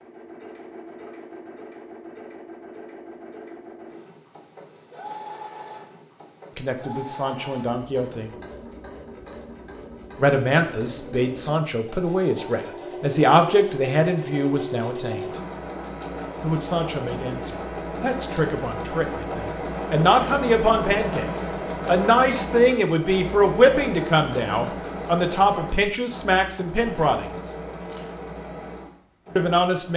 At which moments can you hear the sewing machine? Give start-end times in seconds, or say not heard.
0.0-29.9.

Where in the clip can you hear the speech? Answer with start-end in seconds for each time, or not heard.
6.5-8.3, 10.2-15.3, 16.4-27.5, 29.4-29.9.